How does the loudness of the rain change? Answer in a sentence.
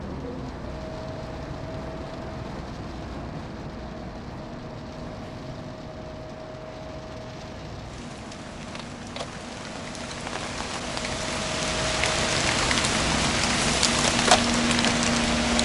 The loudness of the rain goes up.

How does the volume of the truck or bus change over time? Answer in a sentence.
The loudness of the truck or bus goes up.